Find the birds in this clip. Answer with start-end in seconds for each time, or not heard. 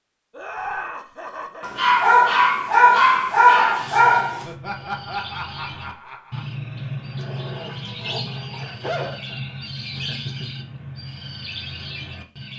3.7-12.5.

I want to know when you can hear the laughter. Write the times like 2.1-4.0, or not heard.
0.3-1.9, 4.5-6.5, 9.0-10.7.